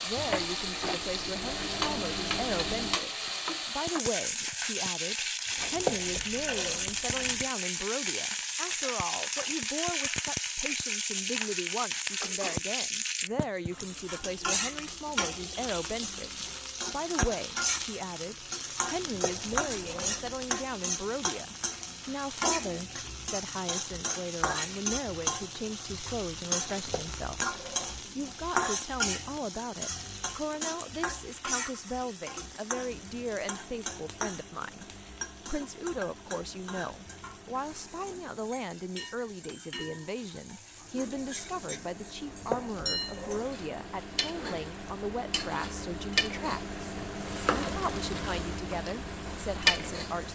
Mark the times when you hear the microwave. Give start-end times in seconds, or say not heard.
0.0-3.0, 32.8-50.3.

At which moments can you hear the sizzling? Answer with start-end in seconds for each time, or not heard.
0.0-50.3.